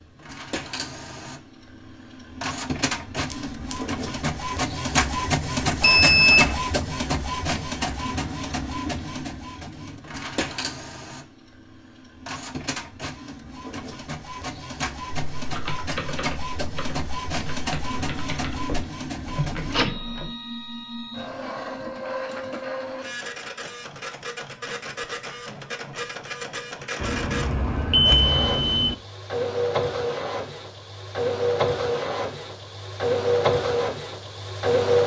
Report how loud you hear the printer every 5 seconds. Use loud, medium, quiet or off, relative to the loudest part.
medium, loud, medium, medium, medium, medium, loud.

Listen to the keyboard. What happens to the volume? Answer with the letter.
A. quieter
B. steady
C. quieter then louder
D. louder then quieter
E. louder
C.